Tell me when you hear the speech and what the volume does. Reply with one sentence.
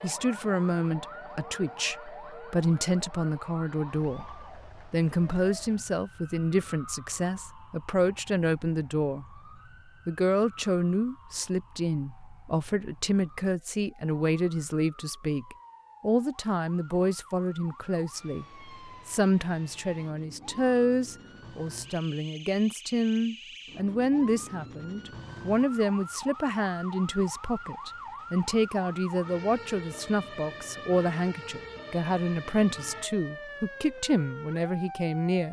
You can hear the speech from 0.0 to 9.4 s, at a steady volume; and from 10.1 to 35.4 s, at a steady volume.